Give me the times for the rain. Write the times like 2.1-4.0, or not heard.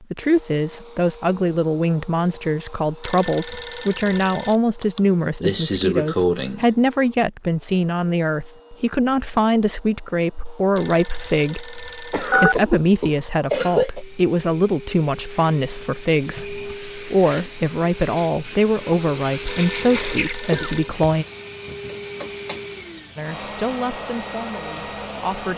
not heard.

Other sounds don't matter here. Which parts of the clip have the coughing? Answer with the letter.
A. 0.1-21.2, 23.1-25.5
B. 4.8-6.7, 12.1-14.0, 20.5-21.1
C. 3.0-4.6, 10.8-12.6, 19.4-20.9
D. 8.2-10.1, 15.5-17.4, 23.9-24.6
B.